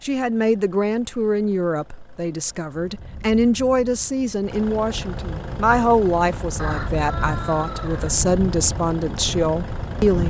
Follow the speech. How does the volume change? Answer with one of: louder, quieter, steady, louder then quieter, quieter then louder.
steady.